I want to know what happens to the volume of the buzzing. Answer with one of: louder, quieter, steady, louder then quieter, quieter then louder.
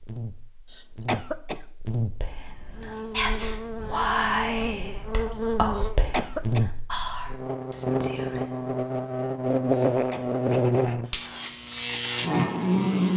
louder.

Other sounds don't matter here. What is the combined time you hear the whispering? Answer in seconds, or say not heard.
6 s.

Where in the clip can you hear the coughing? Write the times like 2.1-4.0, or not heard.
0.7-1.6, 5.8-6.7, 9.8-10.4.